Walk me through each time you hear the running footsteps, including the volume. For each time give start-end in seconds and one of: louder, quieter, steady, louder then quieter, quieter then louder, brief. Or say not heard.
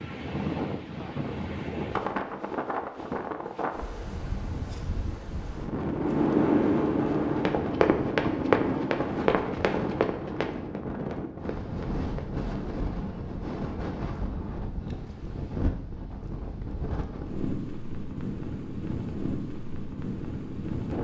7.3-12.3 quieter.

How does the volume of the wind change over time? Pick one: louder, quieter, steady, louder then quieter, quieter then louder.
steady.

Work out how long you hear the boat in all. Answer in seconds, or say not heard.
3 s.